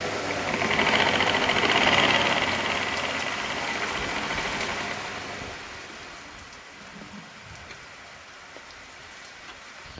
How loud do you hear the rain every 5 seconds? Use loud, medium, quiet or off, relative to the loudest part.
loud, medium.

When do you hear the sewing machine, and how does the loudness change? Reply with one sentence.
The sewing machine can be heard from 0.0 to 5.6 s, getting quieter.